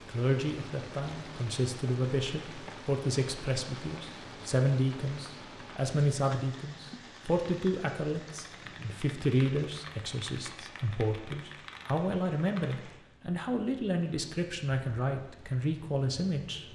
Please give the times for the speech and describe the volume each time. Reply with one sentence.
You can hear the speech from 0.1 to 16.6 s, at a steady volume.